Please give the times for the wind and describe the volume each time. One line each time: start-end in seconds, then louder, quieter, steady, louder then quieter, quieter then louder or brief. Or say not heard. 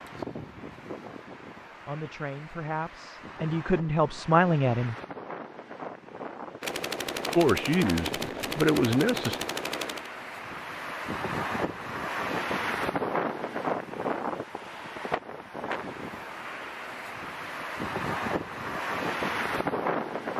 0.0-20.3 louder.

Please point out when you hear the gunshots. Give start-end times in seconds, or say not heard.
6.6-10.1.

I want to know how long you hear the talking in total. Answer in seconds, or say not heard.
5 s.